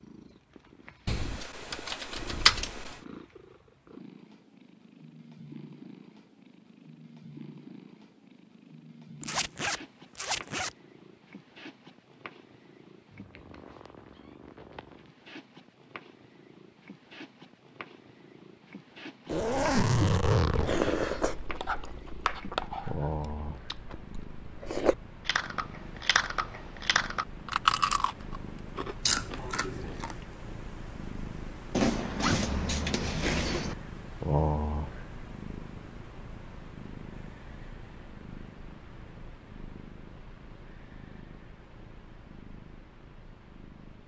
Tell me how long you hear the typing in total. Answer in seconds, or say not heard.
2 s.